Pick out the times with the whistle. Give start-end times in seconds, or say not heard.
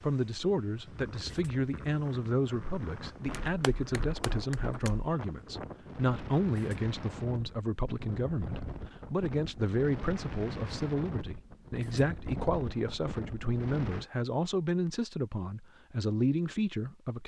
not heard.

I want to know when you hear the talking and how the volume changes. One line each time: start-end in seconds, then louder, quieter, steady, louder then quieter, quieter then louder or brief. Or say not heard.
0.0-17.2 steady.